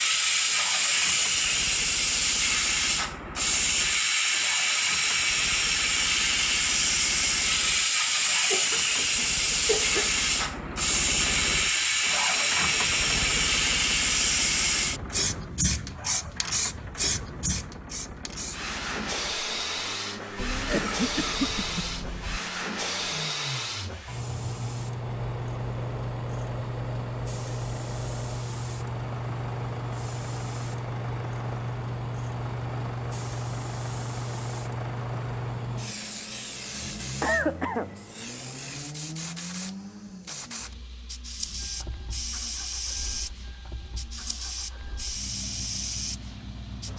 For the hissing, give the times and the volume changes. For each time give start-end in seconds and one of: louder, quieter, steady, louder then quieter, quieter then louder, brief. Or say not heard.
0.0-46.9 quieter.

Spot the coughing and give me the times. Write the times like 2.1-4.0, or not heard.
8.5-10.2, 20.4-22.4, 37.2-38.0.